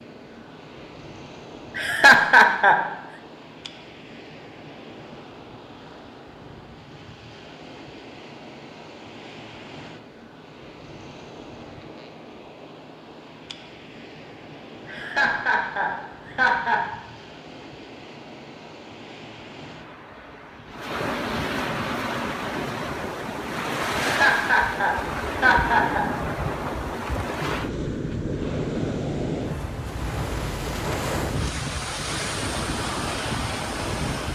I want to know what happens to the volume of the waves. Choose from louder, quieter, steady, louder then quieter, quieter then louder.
louder.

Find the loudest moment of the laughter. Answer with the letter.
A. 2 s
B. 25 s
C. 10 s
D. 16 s
A.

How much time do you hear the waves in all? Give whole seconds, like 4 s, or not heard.
34 s.